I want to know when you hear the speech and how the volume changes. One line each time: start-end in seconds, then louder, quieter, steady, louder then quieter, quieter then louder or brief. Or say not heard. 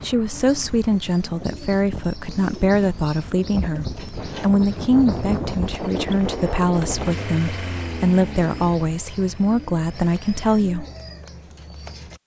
0.0-10.8 steady.